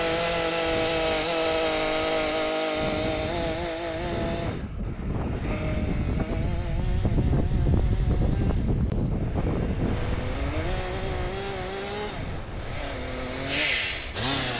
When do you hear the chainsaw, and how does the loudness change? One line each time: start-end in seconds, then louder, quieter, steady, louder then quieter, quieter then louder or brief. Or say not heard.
0.0-14.5 quieter then louder.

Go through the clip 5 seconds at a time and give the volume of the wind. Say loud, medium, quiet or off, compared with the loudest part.
medium, loud, medium.